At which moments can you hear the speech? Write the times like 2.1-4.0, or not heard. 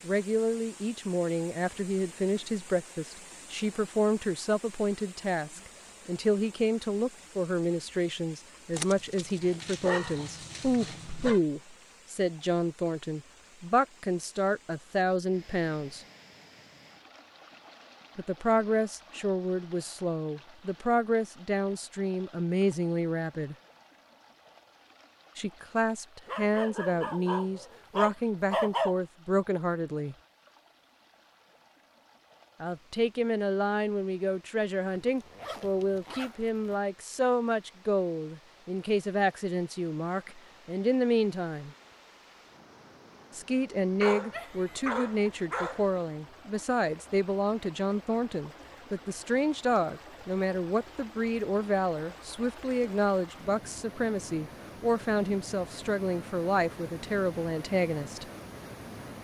0.0-16.0, 18.1-23.6, 25.4-30.1, 32.6-41.7, 43.4-58.2.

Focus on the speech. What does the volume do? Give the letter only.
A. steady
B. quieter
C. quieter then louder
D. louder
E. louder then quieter
A.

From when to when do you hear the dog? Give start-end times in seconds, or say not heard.
8.8-11.4, 26.2-28.9, 44.0-45.9.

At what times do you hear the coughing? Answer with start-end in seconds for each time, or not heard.
not heard.